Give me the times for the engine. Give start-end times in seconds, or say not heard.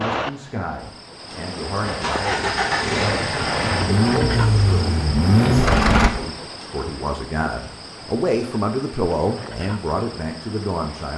1.8-6.1.